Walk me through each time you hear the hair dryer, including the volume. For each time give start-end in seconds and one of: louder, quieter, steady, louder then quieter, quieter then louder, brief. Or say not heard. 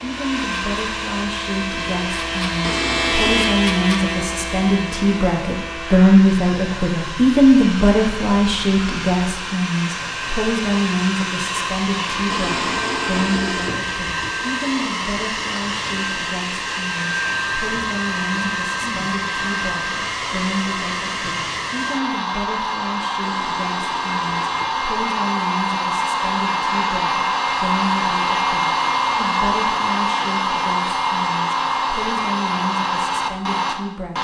0.0-34.2 louder.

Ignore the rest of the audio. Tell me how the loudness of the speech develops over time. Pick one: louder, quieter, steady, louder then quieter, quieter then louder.
quieter.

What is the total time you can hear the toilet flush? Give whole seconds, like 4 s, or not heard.
5 s.